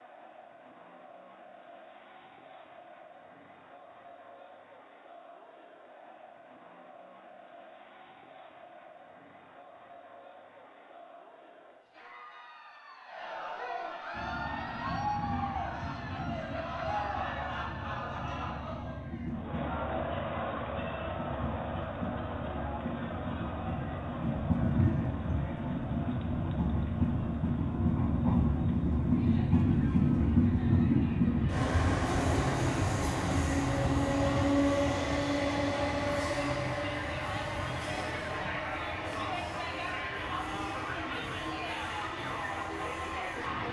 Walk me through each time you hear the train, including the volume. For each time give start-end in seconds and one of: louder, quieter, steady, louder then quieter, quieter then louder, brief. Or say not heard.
14.1-43.6 louder then quieter.